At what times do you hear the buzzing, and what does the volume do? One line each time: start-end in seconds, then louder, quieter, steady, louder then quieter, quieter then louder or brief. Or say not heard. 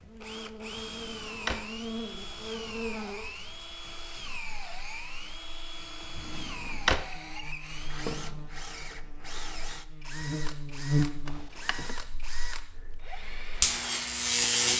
0.0-14.7 quieter then louder.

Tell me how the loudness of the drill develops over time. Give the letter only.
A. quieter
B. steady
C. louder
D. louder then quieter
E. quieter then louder
B.